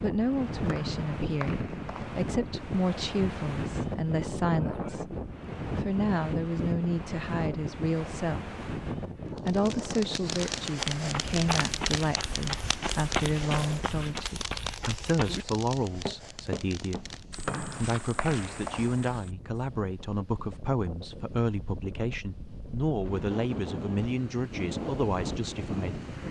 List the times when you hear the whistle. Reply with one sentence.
You can hear the whistle from 0.7 to 2.2 s and from 17.4 to 19.1 s.